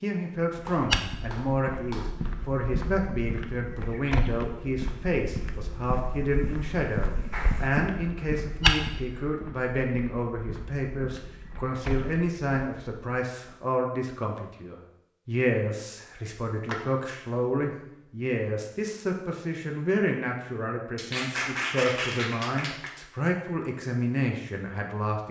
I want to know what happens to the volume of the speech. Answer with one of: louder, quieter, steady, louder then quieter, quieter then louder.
steady.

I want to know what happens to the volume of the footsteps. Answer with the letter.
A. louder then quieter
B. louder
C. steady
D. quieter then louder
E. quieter
A.